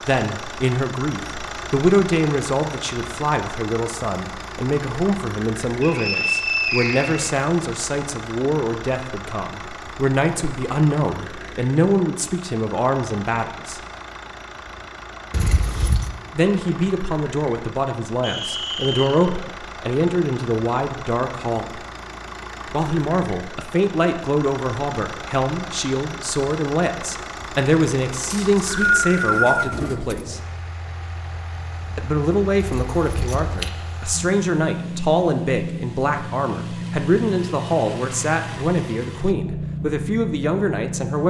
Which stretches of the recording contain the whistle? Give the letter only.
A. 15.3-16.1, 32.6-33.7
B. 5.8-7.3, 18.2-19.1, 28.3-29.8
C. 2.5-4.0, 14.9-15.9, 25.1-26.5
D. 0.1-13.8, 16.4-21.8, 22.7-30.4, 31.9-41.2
B.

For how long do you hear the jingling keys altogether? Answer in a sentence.
You can hear the jingling keys for 2 seconds altogether.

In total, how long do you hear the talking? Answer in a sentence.
The talking can be heard for 36 seconds in total.